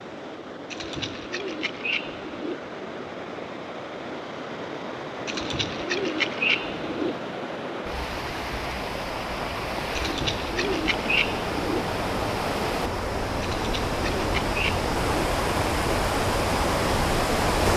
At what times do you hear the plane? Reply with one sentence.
You can't hear the plane here.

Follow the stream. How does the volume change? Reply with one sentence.
The loudness of the stream goes up.